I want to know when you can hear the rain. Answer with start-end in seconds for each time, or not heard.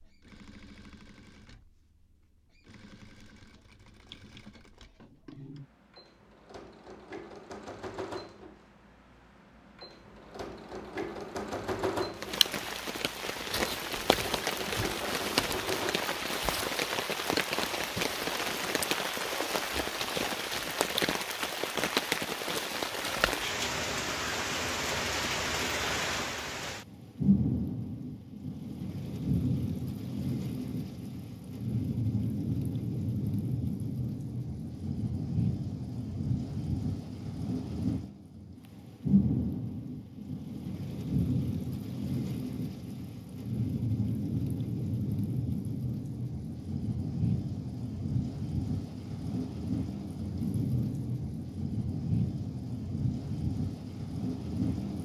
12.2-55.0.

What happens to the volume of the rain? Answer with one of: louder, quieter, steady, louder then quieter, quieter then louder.
steady.